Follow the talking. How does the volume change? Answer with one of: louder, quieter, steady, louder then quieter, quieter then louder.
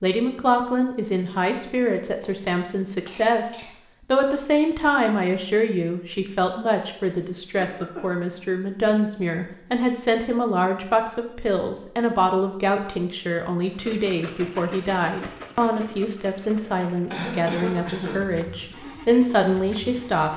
steady.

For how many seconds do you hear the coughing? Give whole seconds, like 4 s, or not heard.
4 s.